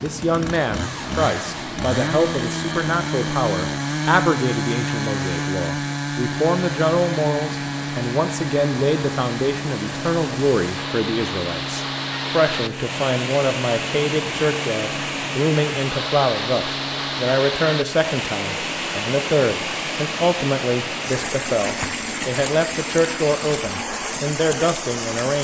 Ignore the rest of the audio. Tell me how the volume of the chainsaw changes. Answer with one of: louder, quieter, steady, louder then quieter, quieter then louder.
quieter.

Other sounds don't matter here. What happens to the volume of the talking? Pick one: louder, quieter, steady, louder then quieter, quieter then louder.
steady.